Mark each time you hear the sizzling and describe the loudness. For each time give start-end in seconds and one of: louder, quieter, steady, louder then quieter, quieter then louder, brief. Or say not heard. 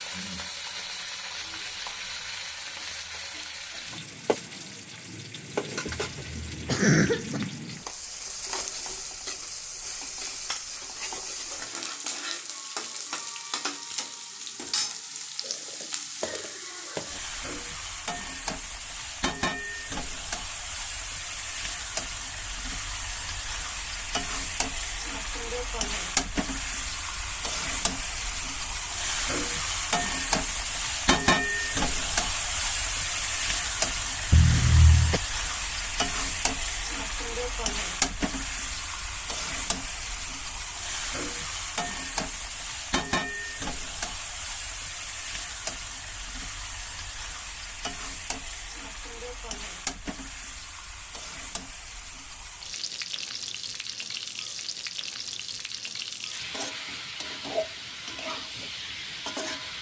0.0-59.7 louder then quieter.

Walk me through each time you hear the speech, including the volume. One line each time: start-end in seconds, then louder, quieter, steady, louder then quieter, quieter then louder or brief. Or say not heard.
not heard.